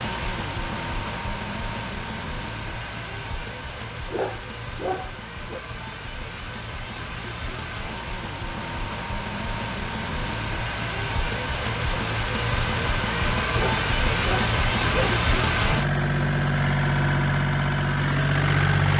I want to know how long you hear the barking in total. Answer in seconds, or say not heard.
3 s.